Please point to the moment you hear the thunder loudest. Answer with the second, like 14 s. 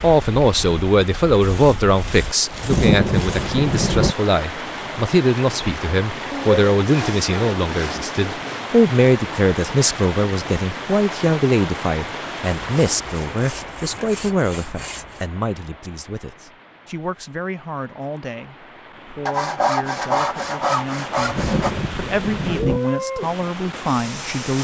3 s.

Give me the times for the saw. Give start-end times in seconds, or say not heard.
1.4-3.5, 6.3-8.7, 12.7-15.2, 19.2-21.7.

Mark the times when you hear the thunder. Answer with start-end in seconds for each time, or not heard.
2.5-4.2, 21.2-22.8.